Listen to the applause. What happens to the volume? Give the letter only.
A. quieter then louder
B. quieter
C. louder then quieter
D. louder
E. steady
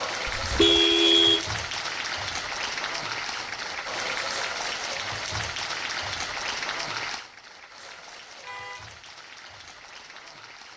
B.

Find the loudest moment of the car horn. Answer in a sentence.
The loudest moment of the car horn is at 1 second.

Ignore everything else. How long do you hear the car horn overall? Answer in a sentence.
You can hear the car horn for 2 seconds altogether.